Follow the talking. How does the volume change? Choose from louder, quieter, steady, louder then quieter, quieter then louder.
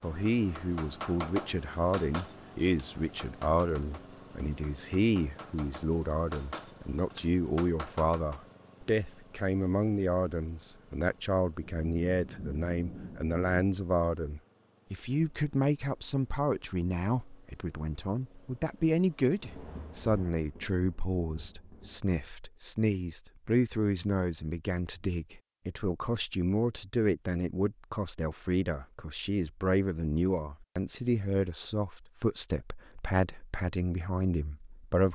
steady.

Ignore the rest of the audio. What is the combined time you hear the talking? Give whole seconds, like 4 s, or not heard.
35 s.